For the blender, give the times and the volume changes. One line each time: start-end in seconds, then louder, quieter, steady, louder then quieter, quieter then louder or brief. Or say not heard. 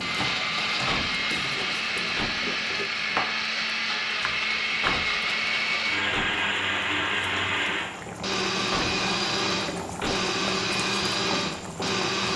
0.0-12.3 steady.